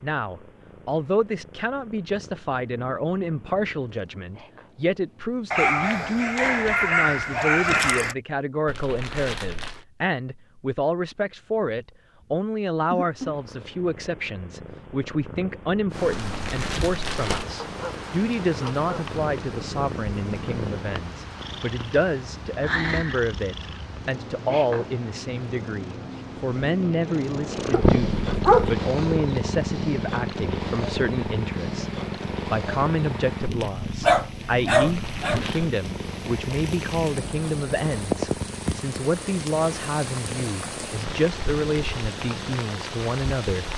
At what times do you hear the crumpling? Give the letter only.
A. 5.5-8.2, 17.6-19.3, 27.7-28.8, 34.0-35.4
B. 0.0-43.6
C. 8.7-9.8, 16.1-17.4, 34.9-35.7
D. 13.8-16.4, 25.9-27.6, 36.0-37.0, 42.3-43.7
C.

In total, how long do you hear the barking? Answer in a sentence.
You can hear the barking for 7 seconds altogether.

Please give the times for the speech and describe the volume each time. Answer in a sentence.
The speech can be heard from 0.0 to 43.6 s, at a steady volume.